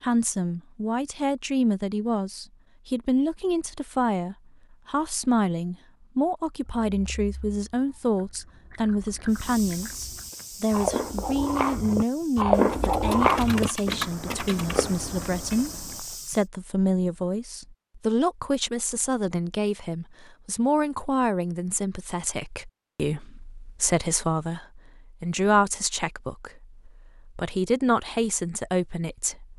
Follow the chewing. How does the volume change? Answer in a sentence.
The volume of the chewing goes up, then down.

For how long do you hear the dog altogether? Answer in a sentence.
The dog can't be heard in this clip.